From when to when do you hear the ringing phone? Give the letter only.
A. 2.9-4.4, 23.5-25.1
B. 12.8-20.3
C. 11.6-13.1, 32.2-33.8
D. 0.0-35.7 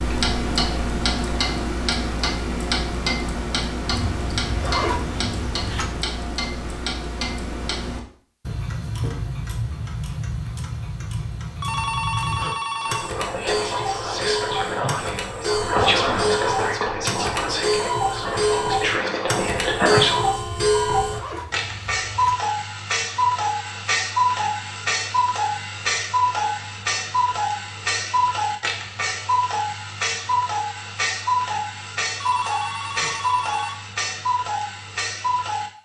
C.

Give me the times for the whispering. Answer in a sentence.
You can hear the whispering from 12.8 to 20.3 s.